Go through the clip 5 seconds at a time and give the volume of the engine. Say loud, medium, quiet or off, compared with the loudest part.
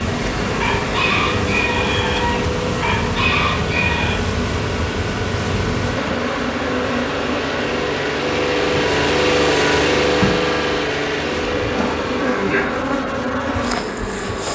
medium, loud, loud.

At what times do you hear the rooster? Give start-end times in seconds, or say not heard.
0.6-4.2.